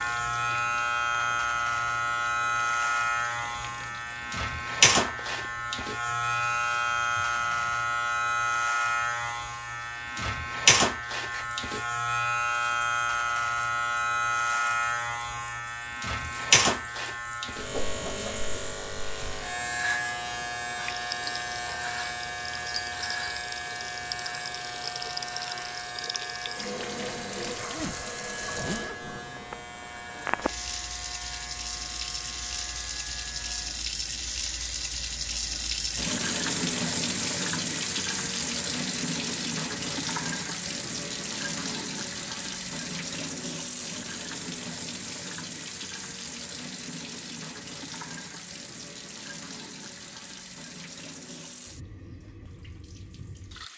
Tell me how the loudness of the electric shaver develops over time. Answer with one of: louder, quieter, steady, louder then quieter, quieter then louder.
quieter.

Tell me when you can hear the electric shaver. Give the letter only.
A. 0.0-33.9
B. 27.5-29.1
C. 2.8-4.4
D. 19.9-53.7
A.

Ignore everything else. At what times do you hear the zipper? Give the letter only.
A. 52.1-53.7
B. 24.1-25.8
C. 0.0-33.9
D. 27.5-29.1
D.